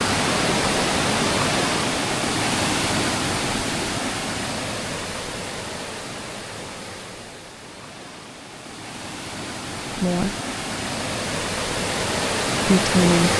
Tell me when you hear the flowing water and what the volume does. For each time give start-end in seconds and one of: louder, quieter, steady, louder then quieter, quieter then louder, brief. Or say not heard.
0.0-13.3 quieter then louder.